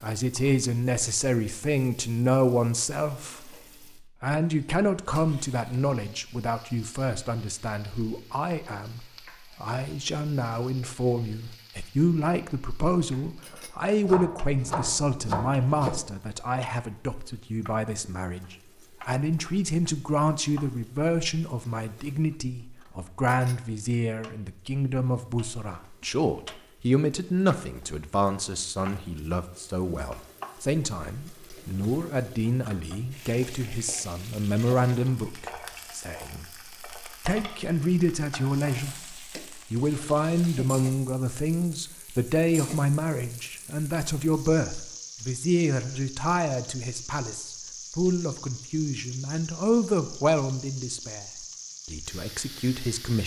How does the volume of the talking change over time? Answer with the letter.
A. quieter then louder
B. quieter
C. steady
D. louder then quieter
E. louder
C.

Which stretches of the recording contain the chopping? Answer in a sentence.
You can hear the chopping from 14.0 to 15.9 s.